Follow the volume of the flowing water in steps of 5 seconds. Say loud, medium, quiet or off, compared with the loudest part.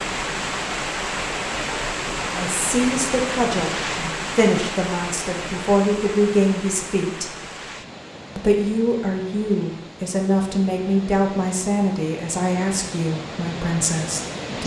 loud, medium, medium.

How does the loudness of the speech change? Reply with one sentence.
The volume of the speech stays about the same.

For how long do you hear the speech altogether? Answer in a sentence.
The speech can be heard for 11 seconds in total.